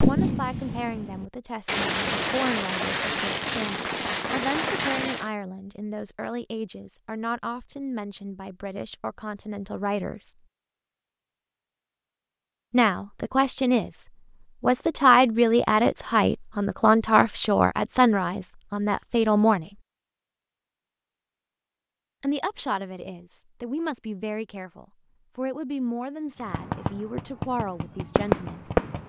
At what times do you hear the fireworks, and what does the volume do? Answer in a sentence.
You can hear the fireworks from 0.0 to 5.3 s, getting louder; and briefly from 26.4 to 29.0 s.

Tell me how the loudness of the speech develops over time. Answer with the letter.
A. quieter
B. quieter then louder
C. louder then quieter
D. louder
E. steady
C.